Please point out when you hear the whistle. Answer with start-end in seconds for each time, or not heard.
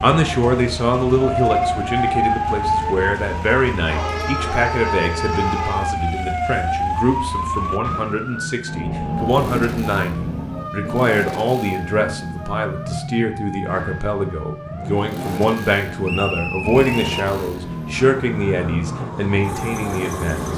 16.1-17.2.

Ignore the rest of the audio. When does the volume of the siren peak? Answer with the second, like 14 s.
2 s.